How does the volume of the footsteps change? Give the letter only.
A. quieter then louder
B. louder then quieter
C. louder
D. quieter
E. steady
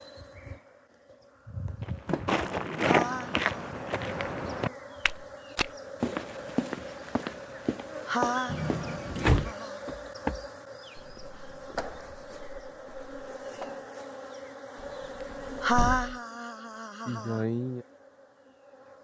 D.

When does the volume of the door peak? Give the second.
9 s.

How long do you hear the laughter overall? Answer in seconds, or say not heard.
4 s.